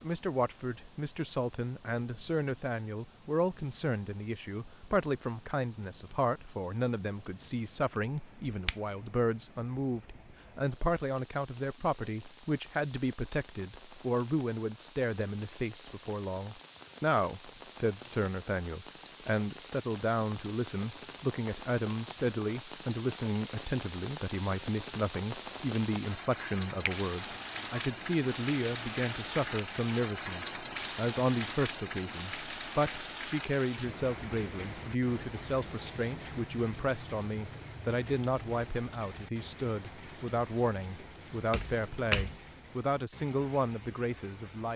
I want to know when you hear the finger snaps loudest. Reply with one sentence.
The volume of the finger snaps peaks at 42 seconds.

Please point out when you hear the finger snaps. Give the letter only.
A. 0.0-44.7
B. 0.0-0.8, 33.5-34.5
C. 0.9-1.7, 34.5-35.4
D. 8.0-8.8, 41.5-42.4
D.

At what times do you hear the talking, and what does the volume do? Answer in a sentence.
You can hear the talking from 0.0 to 44.7 s, at a steady volume.